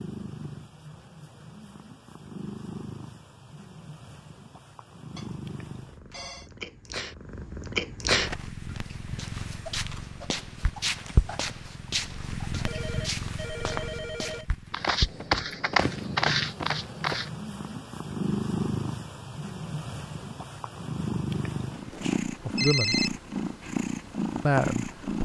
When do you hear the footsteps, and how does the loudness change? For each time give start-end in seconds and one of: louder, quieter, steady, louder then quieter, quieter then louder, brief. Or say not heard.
8.2-17.3 louder.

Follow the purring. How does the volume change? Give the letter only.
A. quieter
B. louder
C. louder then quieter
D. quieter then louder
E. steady
B.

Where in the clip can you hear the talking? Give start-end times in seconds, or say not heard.
21.9-23.1, 24.4-25.2.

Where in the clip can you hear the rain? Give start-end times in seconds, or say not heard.
not heard.